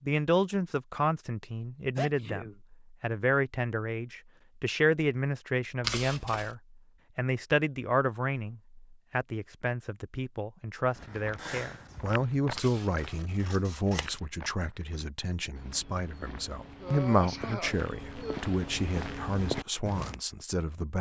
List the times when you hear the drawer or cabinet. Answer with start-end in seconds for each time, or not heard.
not heard.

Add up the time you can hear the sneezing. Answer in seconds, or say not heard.
3 s.